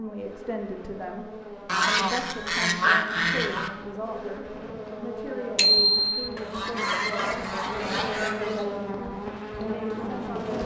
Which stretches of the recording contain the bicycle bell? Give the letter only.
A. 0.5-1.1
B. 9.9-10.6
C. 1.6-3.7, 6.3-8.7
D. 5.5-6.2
D.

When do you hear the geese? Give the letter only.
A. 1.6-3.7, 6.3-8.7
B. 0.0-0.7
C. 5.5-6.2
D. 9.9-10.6
A.